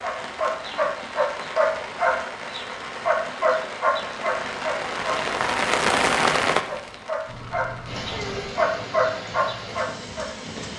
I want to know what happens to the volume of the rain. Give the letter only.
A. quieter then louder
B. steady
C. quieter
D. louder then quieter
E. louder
D.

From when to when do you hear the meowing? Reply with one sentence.
The meowing can be heard from 7.2 to 8.6 s.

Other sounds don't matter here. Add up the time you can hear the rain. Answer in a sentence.
You can hear the rain for 11 seconds altogether.